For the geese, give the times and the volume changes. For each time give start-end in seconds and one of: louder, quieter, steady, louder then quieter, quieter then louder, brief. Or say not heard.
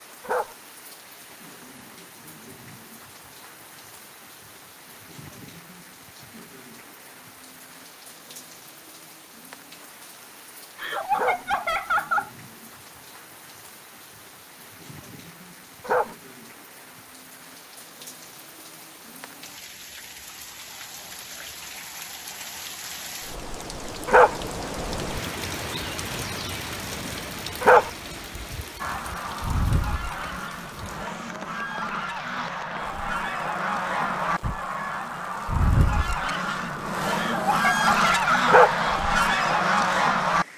28.8-40.5 louder.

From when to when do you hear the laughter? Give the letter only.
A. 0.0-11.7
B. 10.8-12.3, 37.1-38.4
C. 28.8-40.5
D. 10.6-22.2
B.